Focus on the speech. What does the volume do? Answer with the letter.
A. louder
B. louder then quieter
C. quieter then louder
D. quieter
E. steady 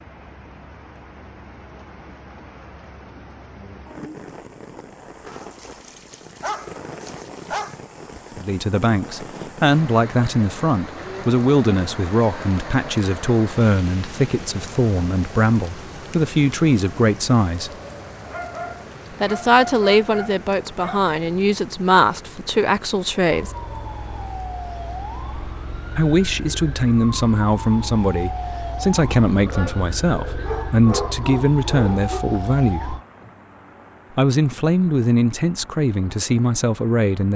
E.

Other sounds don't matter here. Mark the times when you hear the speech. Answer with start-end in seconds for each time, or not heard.
8.3-17.7, 19.2-23.5, 25.9-33.0, 34.1-37.3.